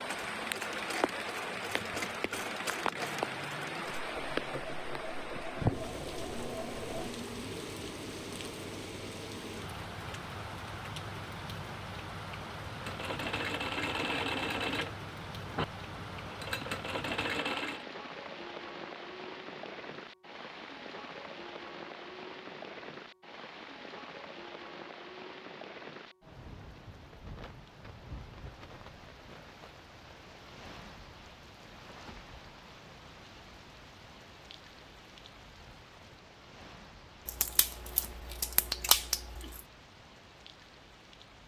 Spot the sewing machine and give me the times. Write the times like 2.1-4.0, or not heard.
0.0-7.2, 12.8-17.9.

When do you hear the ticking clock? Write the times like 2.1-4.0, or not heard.
not heard.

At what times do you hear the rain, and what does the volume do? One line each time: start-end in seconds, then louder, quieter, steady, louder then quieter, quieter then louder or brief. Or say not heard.
0.0-41.4 quieter.